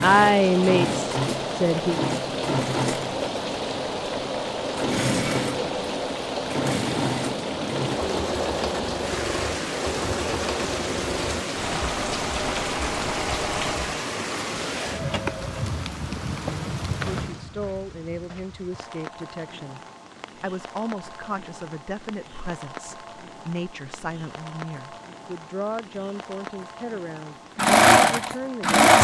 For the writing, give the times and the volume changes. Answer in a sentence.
The writing can't be heard in this clip.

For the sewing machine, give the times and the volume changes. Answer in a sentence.
The sewing machine can be heard from 0.0 to 14.1 s, at a steady volume; and briefly from 27.6 to 29.0 s.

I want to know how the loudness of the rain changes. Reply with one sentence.
The loudness of the rain goes down.